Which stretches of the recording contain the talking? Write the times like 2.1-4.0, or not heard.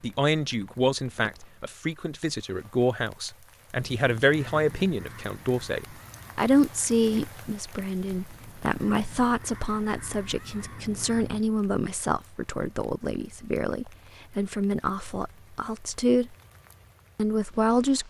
0.0-16.4, 17.1-18.0.